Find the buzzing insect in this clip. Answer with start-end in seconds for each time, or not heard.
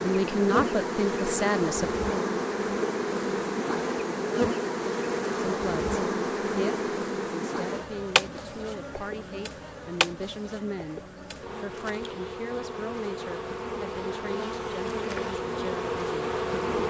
0.0-16.8.